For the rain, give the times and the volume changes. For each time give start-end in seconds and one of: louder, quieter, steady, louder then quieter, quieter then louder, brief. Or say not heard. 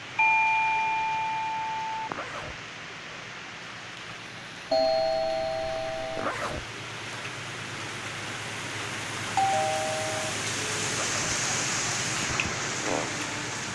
0.0-13.7 louder.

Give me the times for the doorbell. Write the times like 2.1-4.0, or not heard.
0.1-2.1, 4.7-6.2, 9.3-10.3.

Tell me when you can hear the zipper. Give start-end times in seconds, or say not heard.
2.0-2.6, 6.2-6.7, 10.9-11.4.